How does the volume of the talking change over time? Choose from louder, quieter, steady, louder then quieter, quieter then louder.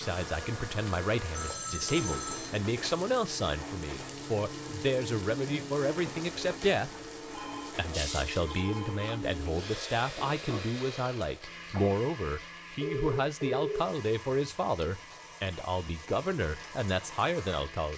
steady.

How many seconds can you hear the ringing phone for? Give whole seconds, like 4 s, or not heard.
4 s.